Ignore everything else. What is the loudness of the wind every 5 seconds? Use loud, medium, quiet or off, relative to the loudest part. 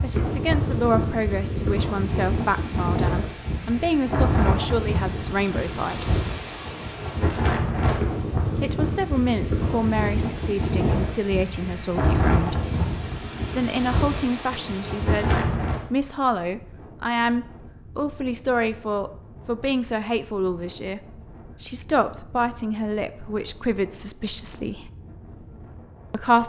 loud, loud, loud, medium, quiet, quiet.